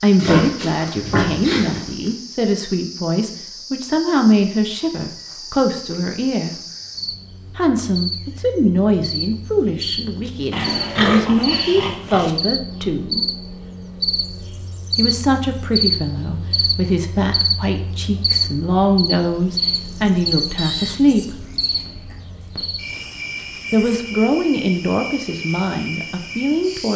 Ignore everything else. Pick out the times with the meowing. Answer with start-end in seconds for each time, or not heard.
not heard.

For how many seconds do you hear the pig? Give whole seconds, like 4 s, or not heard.
6 s.